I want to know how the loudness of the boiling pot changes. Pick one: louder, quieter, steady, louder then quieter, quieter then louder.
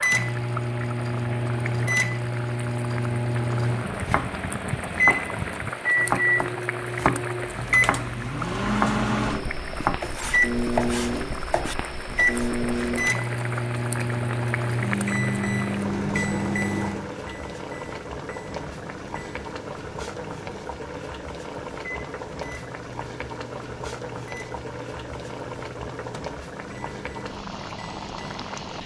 steady.